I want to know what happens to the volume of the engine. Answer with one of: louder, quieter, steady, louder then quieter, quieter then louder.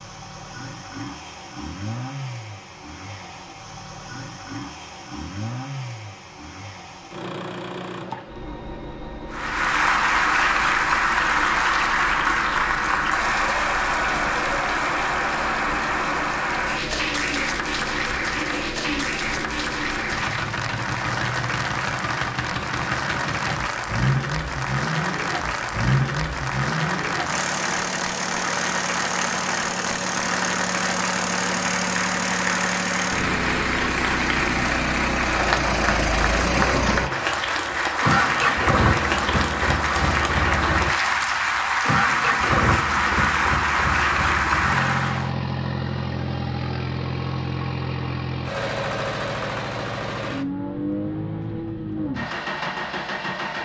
louder.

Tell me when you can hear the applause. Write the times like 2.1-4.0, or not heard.
9.3-45.3.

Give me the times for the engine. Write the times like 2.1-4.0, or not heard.
0.0-53.6.